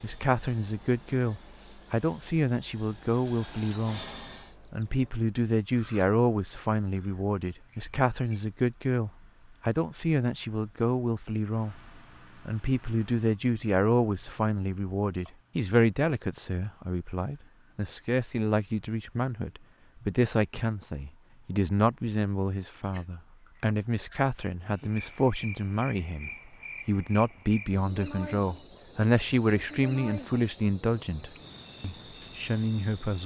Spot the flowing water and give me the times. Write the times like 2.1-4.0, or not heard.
not heard.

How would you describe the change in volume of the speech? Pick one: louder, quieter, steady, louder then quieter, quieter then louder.
steady.